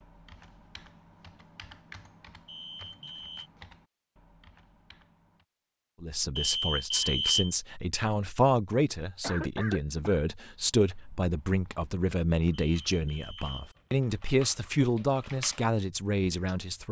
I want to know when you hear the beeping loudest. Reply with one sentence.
The volume of the beeping peaks at 7 seconds.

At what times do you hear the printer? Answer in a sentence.
You can't hear the printer here.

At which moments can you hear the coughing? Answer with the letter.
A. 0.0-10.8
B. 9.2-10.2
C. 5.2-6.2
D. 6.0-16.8
B.